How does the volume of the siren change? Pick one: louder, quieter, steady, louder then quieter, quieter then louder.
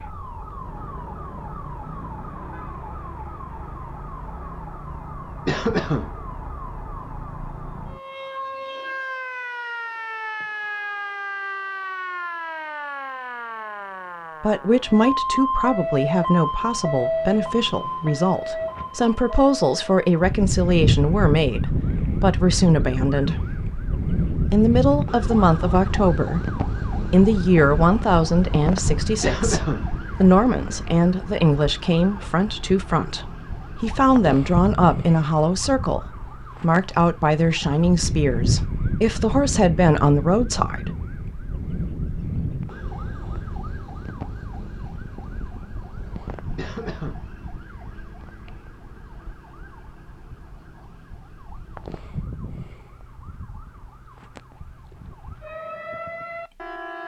louder then quieter.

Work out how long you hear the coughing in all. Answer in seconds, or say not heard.
2 s.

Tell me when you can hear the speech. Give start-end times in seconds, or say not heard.
14.4-23.4, 24.5-40.9.